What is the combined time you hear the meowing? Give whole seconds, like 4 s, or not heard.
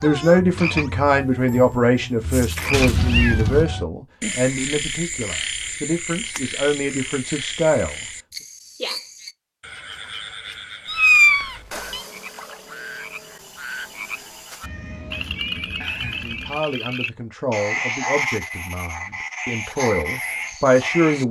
4 s.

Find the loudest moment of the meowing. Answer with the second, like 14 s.
11 s.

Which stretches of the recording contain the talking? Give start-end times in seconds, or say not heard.
0.0-8.0, 16.1-21.2.